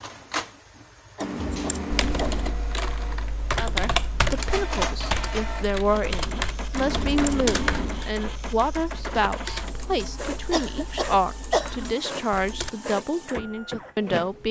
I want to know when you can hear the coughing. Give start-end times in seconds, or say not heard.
1.1-2.5, 10.5-11.9.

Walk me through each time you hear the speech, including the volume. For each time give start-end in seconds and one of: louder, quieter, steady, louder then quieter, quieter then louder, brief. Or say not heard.
3.5-14.4 steady.